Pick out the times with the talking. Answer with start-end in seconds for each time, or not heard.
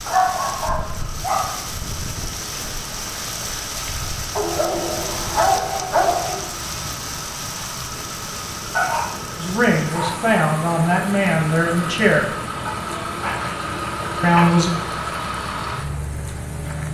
9.4-12.3, 14.2-14.7.